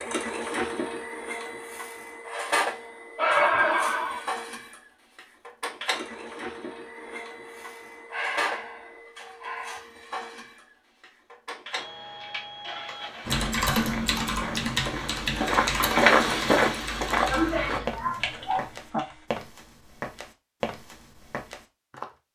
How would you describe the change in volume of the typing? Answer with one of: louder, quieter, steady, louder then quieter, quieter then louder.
quieter.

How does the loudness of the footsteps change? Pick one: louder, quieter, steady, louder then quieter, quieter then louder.
louder then quieter.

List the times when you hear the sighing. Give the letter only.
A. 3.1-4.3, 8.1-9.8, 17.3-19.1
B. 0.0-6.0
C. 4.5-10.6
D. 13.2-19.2
A.